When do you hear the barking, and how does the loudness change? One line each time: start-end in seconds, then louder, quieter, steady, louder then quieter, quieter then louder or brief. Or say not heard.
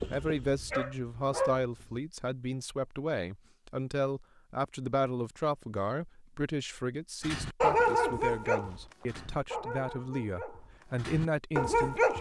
0.0-2.0 brief
7.2-12.1 quieter then louder.